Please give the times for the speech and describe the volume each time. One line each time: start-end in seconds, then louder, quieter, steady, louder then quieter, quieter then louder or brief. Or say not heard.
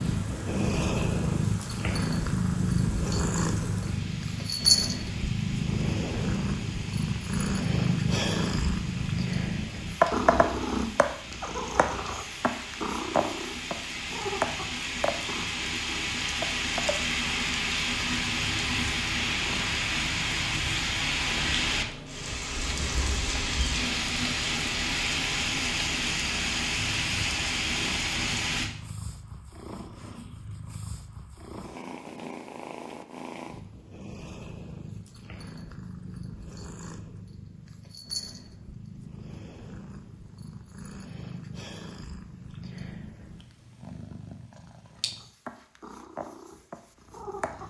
not heard.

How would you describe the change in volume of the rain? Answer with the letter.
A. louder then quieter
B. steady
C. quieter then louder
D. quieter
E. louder
E.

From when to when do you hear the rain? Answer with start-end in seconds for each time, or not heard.
0.0-28.7.